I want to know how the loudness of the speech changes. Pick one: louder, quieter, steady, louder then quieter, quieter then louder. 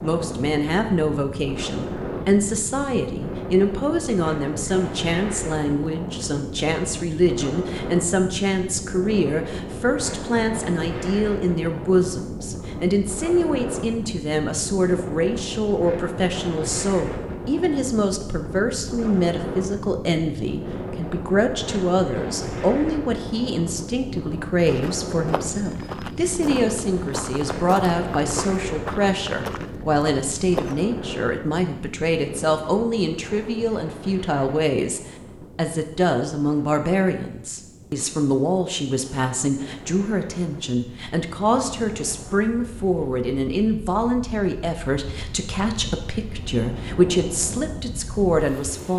steady.